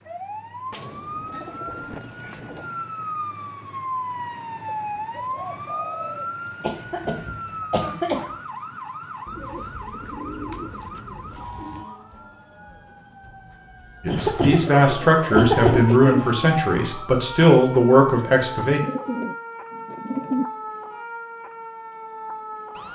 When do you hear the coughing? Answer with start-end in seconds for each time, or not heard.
6.6-8.2, 14.1-15.9.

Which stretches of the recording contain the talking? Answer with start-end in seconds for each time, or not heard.
14.0-18.8.